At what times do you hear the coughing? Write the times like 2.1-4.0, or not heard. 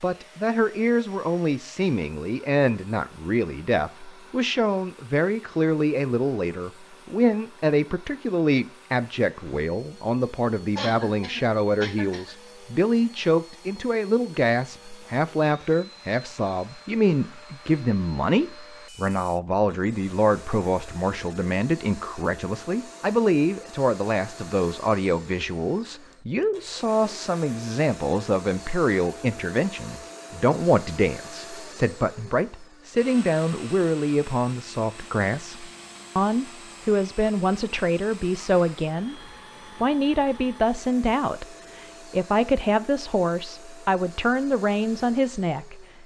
10.8-12.3.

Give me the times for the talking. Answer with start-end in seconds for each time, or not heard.
0.0-39.1, 39.8-45.9.